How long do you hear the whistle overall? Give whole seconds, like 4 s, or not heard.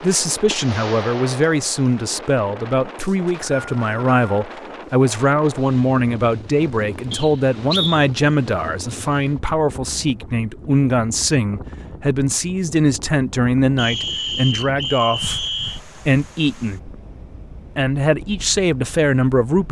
4 s.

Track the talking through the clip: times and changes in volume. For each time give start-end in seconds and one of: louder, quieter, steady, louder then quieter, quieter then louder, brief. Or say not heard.
0.0-16.8 steady
17.8-19.6 brief.